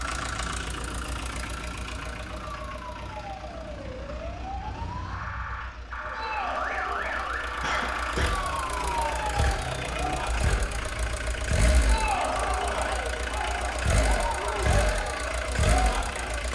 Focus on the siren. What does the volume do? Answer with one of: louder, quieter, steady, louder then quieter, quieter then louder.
louder.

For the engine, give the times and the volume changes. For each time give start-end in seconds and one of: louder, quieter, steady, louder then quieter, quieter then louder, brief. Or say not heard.
0.0-16.4 quieter then louder.